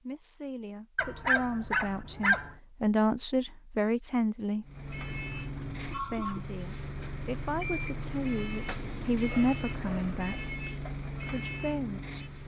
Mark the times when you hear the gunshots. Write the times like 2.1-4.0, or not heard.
not heard.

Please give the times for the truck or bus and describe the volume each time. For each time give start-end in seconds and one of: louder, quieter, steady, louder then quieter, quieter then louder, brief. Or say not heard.
4.6-12.4 steady.